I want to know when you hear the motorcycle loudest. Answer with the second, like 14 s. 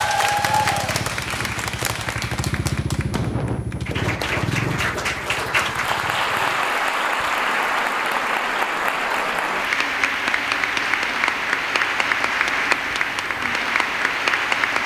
3 s.